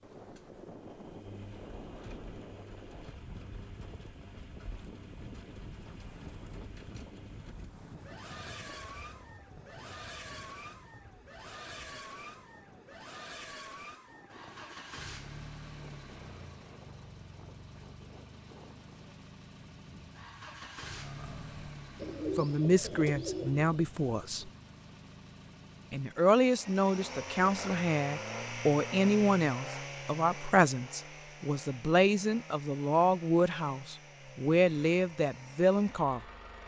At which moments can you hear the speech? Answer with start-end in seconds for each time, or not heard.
22.4-24.5, 25.9-36.2.